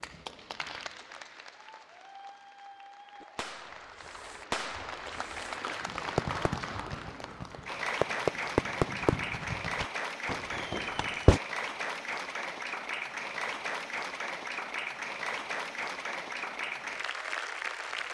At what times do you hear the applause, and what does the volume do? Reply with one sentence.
The applause can be heard from 0.0 to 18.0 s, getting louder.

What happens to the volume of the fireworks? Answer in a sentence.
The loudness of the fireworks goes up, then down.